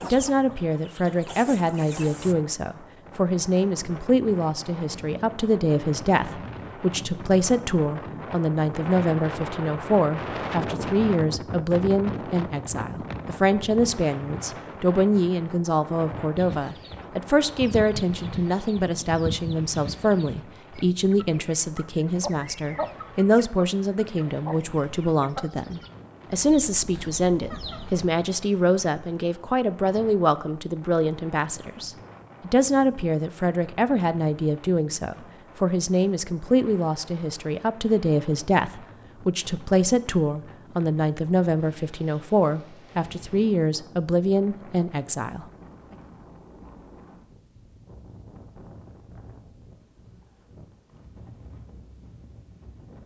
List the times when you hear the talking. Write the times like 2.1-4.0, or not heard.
0.0-45.5.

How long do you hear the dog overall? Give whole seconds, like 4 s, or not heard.
not heard.